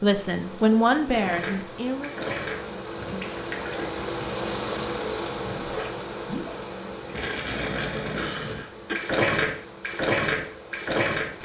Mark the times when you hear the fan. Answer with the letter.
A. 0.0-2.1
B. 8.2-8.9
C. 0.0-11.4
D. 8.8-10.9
C.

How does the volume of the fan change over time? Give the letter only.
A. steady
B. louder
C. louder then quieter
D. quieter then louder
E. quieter
C.